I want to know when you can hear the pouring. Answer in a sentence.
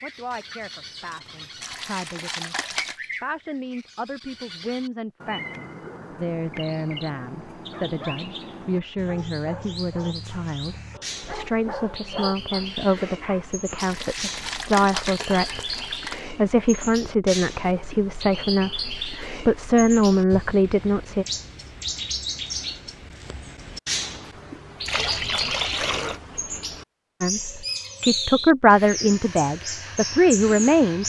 You can hear the pouring from 1.6 to 3.0 s, from 13.8 to 16.2 s and from 24.8 to 26.2 s.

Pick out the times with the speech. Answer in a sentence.
The speech can be heard from 0.0 to 21.2 s and from 27.2 to 31.0 s.